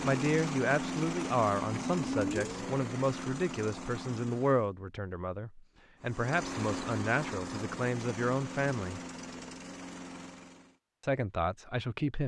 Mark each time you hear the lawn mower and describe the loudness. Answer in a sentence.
You can hear the lawn mower from 0.0 to 4.7 s, getting quieter; and from 6.0 to 10.8 s, getting quieter.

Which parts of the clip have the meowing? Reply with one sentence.
The meowing can be heard from 1.7 to 2.8 s.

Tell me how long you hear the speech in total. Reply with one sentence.
You can hear the speech for 10 seconds altogether.